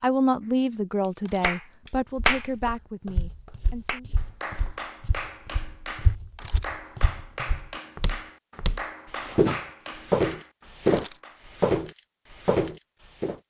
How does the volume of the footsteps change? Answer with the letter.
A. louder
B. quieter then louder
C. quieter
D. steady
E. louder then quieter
A.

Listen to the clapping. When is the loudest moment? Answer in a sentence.
The loudest moment of the clapping is at 2 seconds.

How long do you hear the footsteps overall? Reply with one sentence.
The footsteps can be heard for 11 seconds in total.